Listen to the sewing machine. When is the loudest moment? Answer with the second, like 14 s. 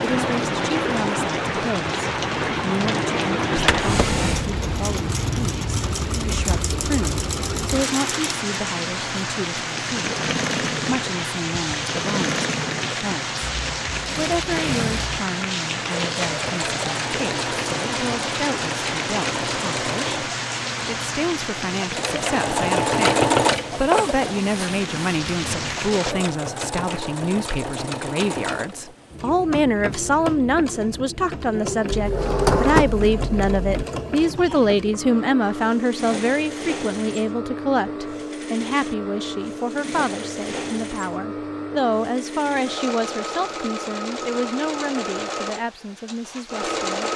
23 s.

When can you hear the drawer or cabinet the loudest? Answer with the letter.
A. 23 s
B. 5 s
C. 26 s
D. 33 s
D.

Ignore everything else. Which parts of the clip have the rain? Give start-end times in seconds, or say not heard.
0.0-26.1.